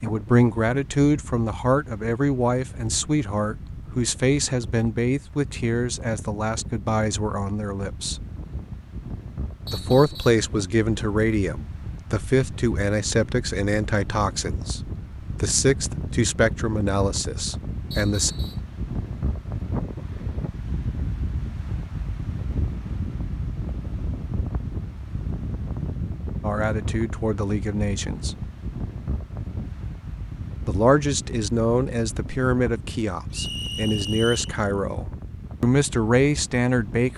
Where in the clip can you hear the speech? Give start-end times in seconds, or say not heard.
0.0-8.2, 9.7-14.8, 15.4-18.3, 26.4-28.4, 30.6-37.1.